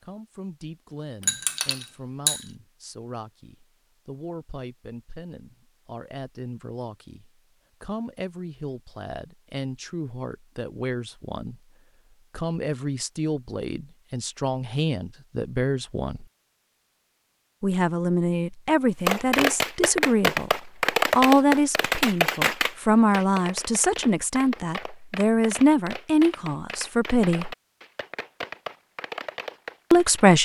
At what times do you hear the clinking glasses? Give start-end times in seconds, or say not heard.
1.2-2.5.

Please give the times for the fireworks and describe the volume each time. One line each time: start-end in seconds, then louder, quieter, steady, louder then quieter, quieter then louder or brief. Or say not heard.
19.1-30.3 quieter.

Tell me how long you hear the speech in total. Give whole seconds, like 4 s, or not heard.
26 s.